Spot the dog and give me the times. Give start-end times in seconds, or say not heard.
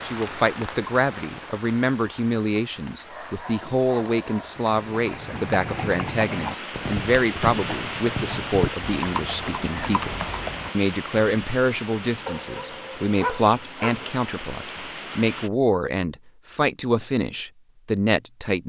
3.0-4.6, 12.2-14.1.